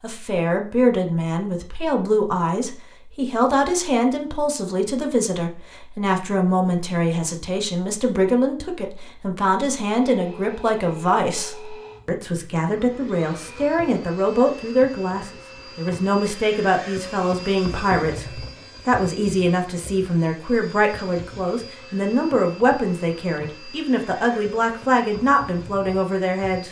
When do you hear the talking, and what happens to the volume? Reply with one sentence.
The talking can be heard from 0.0 to 26.6 s, at a steady volume.